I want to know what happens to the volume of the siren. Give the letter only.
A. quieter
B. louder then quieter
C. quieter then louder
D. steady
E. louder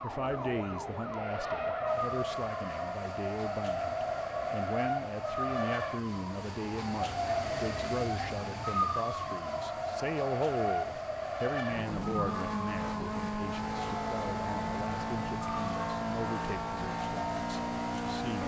B.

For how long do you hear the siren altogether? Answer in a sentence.
The siren can be heard for 18 seconds in total.